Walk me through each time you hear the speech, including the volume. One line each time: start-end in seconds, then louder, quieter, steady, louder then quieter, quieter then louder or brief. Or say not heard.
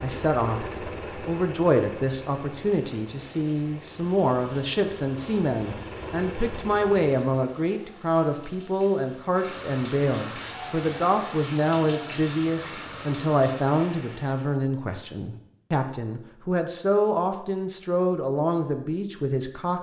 0.0-19.7 steady.